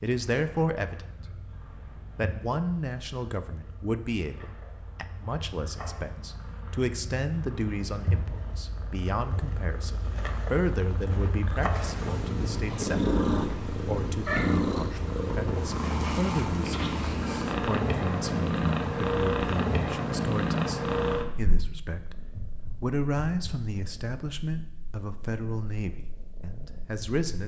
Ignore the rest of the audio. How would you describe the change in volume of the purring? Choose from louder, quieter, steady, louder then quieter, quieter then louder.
louder then quieter.